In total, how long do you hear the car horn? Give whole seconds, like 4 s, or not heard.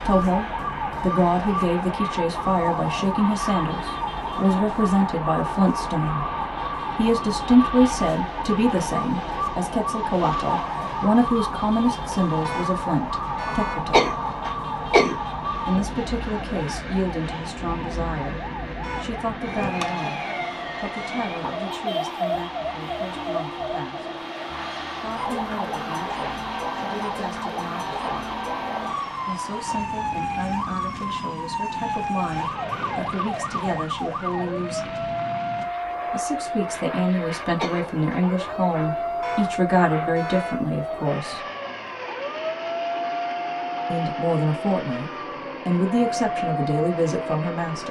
3 s.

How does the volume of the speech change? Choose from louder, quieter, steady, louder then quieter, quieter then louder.
quieter then louder.